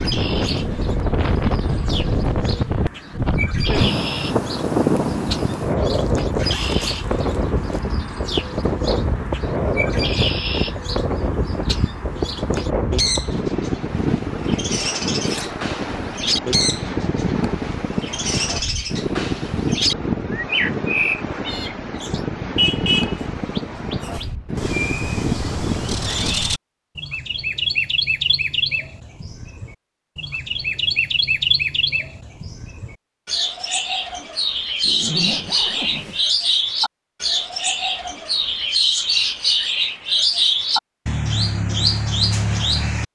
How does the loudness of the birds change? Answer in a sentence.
The volume of the birds goes up.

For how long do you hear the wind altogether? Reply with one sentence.
The wind can be heard for 26 seconds in total.